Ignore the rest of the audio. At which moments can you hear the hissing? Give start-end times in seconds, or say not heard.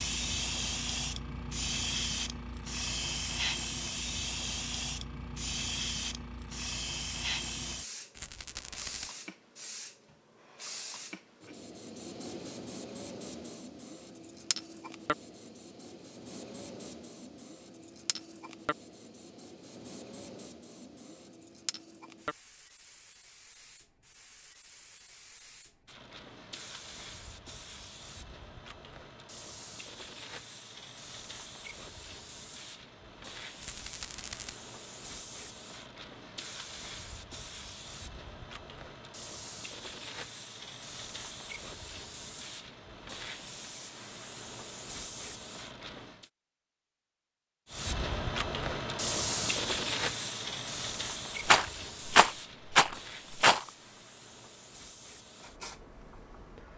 0.0-46.3, 47.6-56.7.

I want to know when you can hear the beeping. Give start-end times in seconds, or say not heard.
not heard.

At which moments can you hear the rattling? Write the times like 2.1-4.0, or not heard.
8.1-9.1, 33.6-34.5, 51.5-53.6.